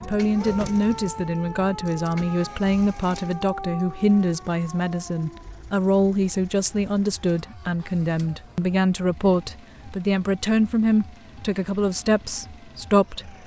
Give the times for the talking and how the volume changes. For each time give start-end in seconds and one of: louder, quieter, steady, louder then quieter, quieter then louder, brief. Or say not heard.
0.0-13.3 steady.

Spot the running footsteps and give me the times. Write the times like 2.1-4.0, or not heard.
not heard.